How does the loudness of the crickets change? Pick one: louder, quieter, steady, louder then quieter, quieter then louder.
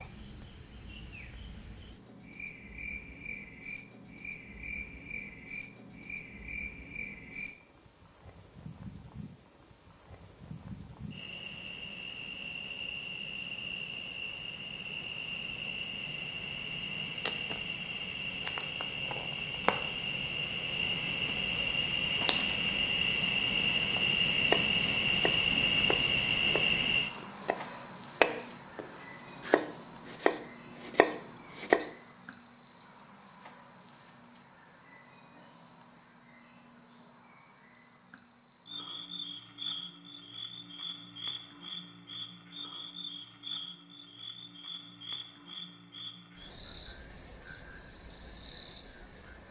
louder then quieter.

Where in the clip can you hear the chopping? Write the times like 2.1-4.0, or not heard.
24.4-31.9.